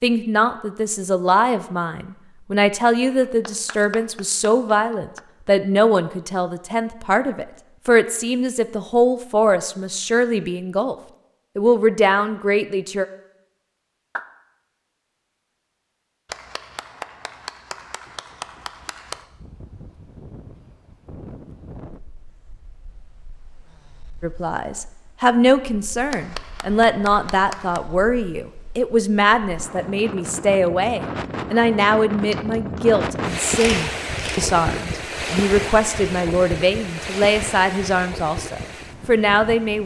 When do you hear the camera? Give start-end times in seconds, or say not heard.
33.5-34.4.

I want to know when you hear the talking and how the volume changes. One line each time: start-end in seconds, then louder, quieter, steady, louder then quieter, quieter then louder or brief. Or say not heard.
0.0-10.9 steady
11.6-13.1 brief
24.2-39.8 steady.